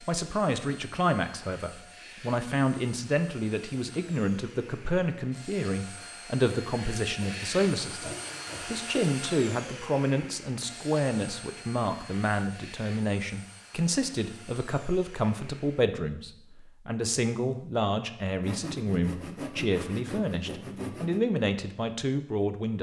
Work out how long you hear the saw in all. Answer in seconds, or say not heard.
5 s.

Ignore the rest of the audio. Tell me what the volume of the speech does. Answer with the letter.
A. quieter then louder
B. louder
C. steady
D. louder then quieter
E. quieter
C.